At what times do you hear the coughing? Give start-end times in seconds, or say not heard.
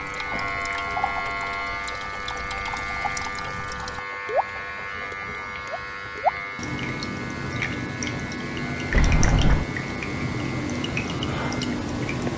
not heard.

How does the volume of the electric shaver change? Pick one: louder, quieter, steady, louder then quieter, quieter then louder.
quieter.